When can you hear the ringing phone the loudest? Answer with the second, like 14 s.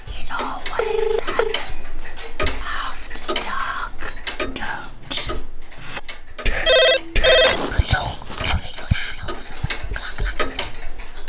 7 s.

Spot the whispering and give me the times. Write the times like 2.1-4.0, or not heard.
0.1-10.8.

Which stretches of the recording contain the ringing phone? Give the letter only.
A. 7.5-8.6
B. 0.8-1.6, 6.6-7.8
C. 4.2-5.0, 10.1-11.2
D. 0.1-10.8
B.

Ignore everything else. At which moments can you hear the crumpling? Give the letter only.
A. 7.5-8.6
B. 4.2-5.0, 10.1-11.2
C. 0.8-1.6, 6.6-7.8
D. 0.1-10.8
A.